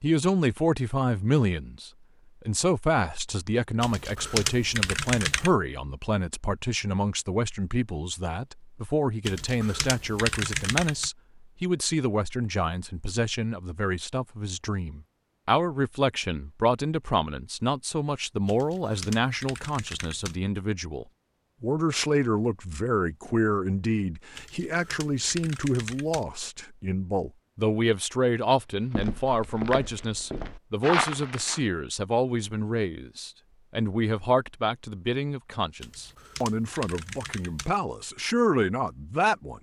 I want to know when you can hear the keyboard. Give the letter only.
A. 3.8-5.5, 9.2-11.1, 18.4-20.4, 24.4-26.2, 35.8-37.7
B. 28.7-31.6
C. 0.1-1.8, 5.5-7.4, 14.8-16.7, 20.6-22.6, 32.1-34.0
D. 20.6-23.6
A.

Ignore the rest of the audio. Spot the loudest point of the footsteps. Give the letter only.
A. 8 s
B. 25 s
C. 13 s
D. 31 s
D.